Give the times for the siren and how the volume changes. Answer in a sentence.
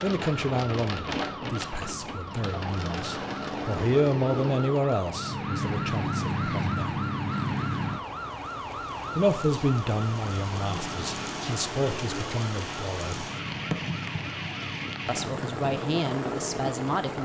You can hear the siren from 0.0 to 17.2 s, getting louder then quieter.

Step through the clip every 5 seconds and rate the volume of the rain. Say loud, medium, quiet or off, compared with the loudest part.
loud, medium, loud, loud.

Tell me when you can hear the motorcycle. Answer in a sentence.
You can't hear the motorcycle here.